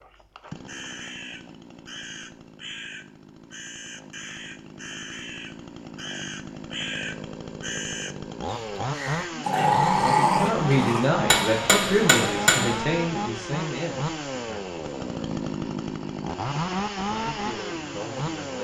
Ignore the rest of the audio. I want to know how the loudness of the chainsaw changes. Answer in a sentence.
The volume of the chainsaw goes up.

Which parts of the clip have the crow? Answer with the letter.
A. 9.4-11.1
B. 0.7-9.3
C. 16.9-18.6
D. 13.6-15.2
B.